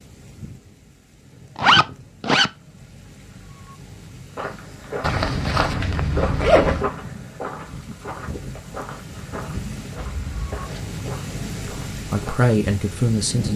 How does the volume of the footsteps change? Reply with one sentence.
The loudness of the footsteps goes down.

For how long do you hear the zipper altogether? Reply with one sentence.
The zipper can be heard for 4 seconds in total.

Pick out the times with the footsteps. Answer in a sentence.
The footsteps can be heard from 4.3 to 12.5 s.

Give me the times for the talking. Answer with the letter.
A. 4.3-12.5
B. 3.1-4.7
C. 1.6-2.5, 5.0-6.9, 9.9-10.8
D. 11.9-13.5
D.